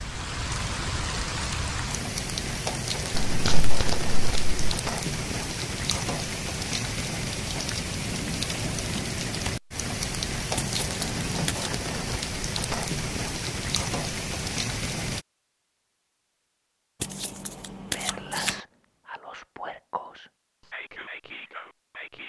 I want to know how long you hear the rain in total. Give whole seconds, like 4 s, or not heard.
15 s.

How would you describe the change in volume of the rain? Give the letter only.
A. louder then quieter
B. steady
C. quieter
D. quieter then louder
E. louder
B.